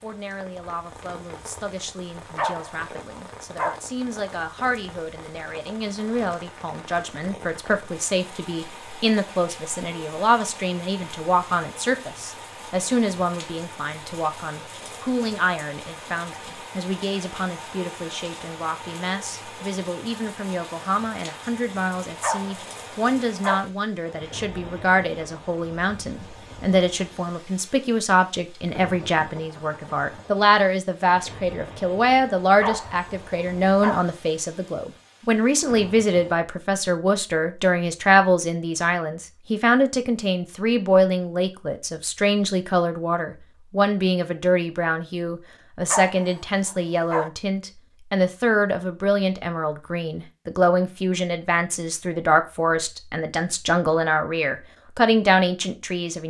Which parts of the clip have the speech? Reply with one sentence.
The speech can be heard from 0.0 to 56.2 s.